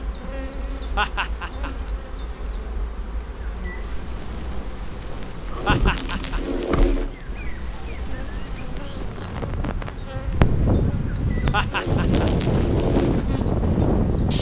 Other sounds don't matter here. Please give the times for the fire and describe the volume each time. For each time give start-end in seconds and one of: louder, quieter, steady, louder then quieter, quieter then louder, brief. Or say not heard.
0.2-14.3 louder.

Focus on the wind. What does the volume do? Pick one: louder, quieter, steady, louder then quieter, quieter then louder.
louder.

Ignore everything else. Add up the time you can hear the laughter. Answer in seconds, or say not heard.
3 s.